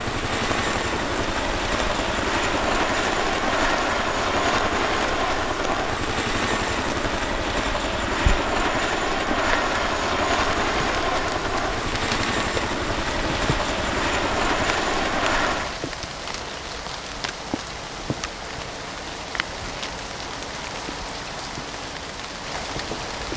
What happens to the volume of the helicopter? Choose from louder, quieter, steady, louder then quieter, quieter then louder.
steady.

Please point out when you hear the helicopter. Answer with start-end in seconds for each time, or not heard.
0.0-15.8.